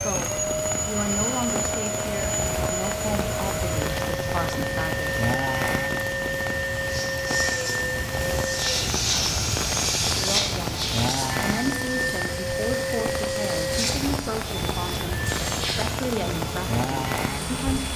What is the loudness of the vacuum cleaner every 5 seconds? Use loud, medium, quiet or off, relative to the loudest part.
loud, loud, loud, medium.